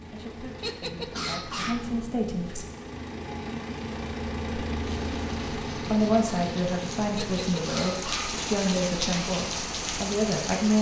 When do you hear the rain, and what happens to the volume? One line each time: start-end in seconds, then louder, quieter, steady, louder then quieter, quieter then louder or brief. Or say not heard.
5.0-10.7 louder.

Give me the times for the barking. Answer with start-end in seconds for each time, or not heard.
0.6-1.9, 7.2-8.4.